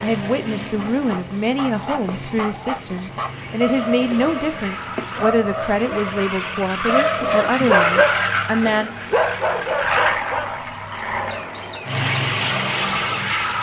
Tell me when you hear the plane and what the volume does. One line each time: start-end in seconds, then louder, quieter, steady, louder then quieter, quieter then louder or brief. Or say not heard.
0.0-13.5 louder.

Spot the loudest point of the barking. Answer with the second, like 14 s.
8 s.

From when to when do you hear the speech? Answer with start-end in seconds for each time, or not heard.
0.0-8.9.